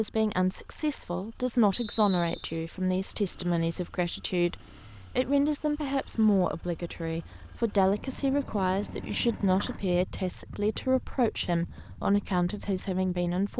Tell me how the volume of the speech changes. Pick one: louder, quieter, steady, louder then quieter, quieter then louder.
steady.